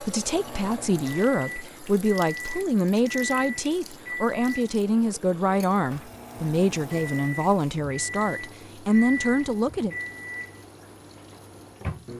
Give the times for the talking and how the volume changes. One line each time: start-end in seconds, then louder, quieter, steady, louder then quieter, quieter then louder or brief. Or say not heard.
0.0-9.9 steady.